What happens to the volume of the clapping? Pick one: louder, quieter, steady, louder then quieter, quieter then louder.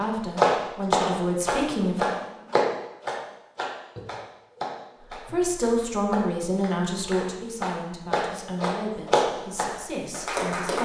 quieter then louder.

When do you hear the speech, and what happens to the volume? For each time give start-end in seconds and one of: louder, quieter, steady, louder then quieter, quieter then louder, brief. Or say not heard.
0.0-2.1 brief
5.2-10.8 quieter.